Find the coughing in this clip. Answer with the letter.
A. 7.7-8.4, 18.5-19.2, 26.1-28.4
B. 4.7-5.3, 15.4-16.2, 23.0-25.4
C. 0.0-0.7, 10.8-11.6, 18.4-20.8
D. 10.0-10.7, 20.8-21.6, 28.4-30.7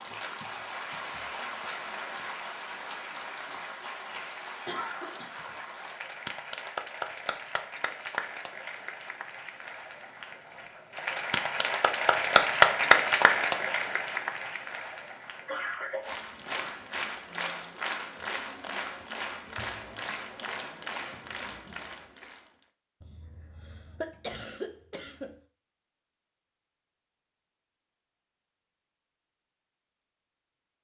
B.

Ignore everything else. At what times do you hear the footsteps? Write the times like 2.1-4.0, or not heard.
not heard.